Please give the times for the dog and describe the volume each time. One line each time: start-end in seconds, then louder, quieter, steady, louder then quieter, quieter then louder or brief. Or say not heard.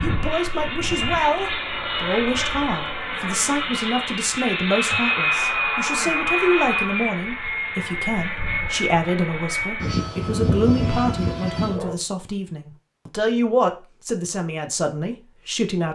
not heard.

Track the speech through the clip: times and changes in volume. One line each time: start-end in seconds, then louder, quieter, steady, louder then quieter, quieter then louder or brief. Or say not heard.
0.0-15.8 steady.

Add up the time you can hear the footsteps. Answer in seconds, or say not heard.
not heard.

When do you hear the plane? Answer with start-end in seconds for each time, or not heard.
0.0-11.9.